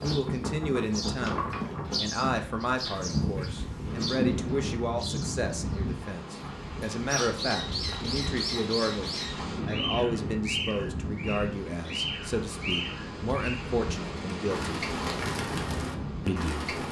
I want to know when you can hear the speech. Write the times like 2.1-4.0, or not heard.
0.0-14.8, 16.2-16.8.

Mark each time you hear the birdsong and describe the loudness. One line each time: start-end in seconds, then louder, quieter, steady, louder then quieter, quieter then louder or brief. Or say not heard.
0.0-16.8 steady.